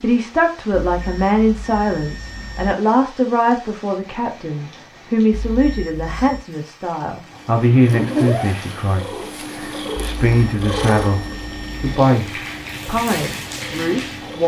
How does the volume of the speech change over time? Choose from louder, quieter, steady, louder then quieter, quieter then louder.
steady.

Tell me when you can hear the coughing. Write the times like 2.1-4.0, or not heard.
not heard.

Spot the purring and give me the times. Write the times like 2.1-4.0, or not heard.
7.3-14.4.